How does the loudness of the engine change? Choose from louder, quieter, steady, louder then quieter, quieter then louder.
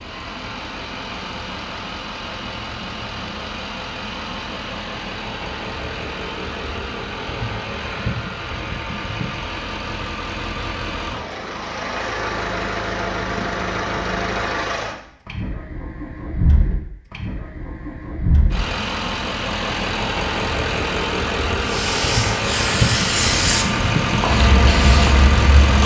louder.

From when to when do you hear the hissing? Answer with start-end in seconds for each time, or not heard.
21.6-25.8.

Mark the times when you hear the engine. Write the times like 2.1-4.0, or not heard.
0.0-25.8.